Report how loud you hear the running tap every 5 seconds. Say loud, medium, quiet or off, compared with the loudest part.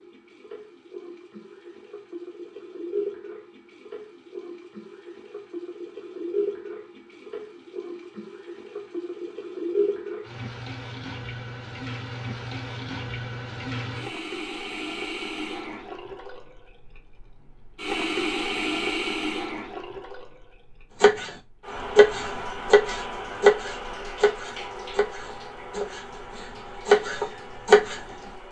medium, loud, loud, loud, medium, medium.